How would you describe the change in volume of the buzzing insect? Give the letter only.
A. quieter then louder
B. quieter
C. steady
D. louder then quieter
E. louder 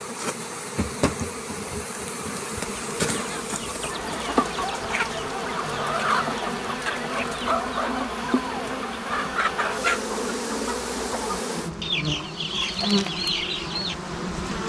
C.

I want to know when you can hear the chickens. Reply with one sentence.
The chickens can be heard from 3.0 to 13.9 s.